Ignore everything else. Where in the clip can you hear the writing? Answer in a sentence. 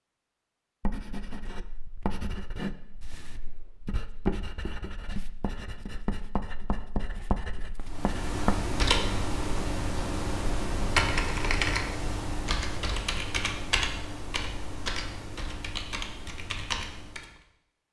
The writing can be heard from 0.8 to 8.6 s.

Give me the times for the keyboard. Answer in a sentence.
You can hear the keyboard from 7.8 to 17.4 s.